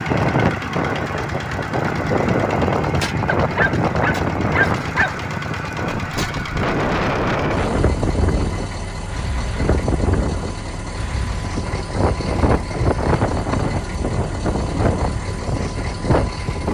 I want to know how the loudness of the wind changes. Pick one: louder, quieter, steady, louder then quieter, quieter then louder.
steady.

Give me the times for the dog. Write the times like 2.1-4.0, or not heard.
3.2-5.2.